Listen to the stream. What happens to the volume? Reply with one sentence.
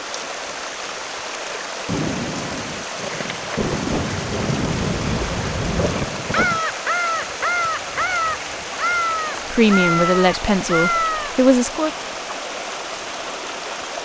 The volume of the stream stays about the same.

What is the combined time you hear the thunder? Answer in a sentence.
You can hear the thunder for 5 seconds altogether.